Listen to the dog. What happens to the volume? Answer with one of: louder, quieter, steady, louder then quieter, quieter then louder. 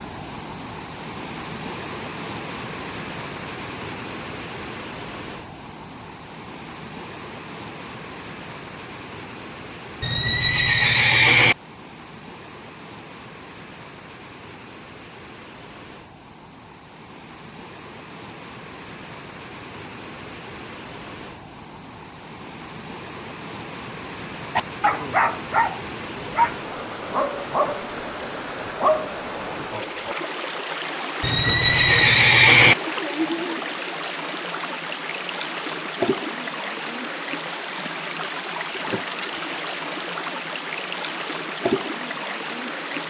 quieter then louder.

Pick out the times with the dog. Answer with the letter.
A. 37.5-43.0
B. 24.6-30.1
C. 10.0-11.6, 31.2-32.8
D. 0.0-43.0
B.